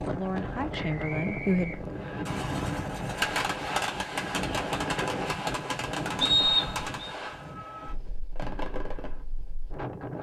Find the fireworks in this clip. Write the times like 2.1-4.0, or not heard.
2.2-9.2.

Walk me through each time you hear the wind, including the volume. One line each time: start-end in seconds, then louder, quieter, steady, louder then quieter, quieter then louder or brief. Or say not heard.
0.0-10.1 quieter.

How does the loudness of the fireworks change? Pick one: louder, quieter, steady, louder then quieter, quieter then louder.
quieter.